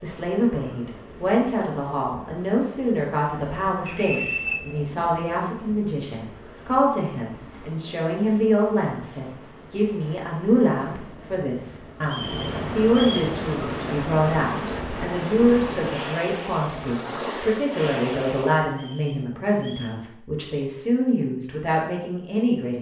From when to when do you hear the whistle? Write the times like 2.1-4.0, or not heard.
3.9-4.6, 12.0-13.3, 18.7-20.0.